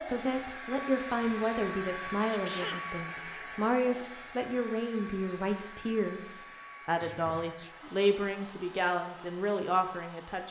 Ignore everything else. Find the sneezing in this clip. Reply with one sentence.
The sneezing can be heard from 2.2 to 3.0 s and from 7.0 to 8.0 s.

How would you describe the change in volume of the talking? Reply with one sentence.
The volume of the talking stays about the same.